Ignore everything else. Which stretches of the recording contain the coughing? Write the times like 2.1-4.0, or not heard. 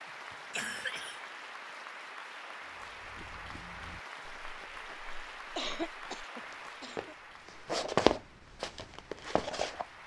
0.3-1.2, 5.5-7.2.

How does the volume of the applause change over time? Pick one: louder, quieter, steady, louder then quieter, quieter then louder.
quieter.